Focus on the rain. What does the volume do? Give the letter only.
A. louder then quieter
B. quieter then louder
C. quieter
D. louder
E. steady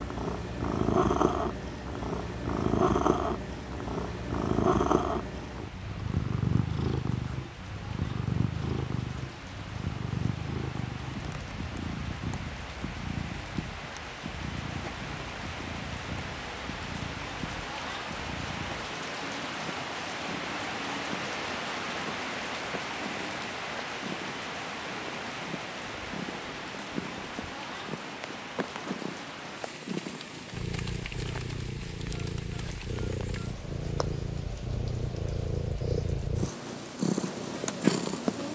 A.